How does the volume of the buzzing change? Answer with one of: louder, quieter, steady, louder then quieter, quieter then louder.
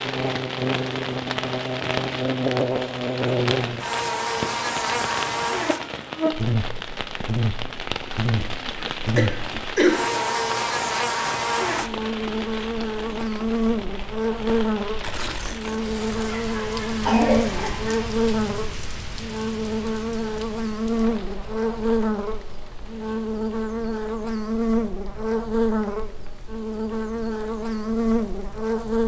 steady.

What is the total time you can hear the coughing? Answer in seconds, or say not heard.
3 s.